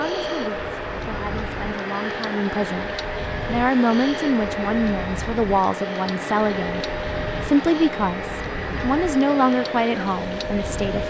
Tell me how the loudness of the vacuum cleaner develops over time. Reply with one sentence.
The loudness of the vacuum cleaner stays about the same.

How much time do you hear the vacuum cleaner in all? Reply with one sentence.
You can hear the vacuum cleaner for 11 seconds altogether.